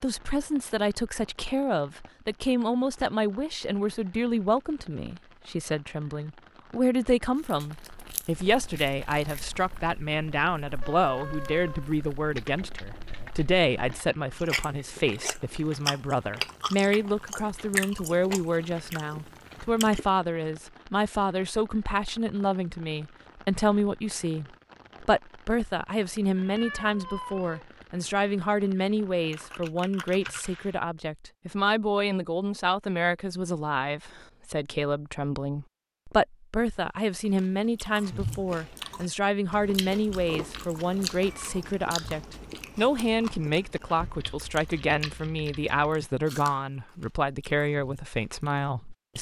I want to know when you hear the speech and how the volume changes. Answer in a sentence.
You can hear the speech from 0.0 to 49.1 s, at a steady volume.